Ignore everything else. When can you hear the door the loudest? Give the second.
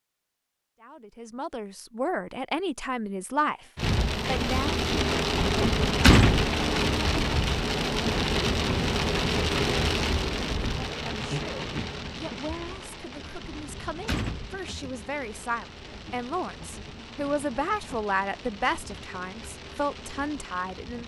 6 s.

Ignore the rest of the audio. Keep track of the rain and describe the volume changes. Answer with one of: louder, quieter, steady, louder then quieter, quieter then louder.
quieter.